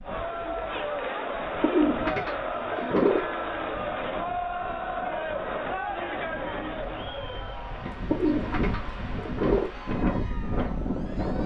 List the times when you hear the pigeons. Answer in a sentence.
You can hear the pigeons from 1.6 to 3.2 s and from 8.1 to 9.7 s.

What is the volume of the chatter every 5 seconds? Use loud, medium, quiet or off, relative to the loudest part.
loud, loud, quiet.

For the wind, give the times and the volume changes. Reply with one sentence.
The wind can be heard from 0.0 to 11.4 s, getting louder.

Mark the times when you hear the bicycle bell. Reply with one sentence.
You can't hear the bicycle bell here.